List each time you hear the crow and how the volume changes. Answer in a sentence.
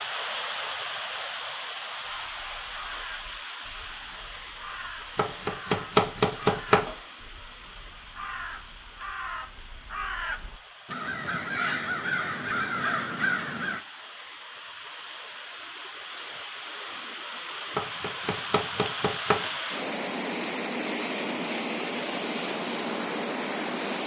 The crow can be heard from 2.0 to 13.8 s, getting louder.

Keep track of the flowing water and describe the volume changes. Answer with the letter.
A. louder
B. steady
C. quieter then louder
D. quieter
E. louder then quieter
C.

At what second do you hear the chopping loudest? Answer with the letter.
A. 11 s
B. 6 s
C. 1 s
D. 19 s
B.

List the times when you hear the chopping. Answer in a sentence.
You can hear the chopping from 5.2 to 7.0 s and from 17.8 to 19.5 s.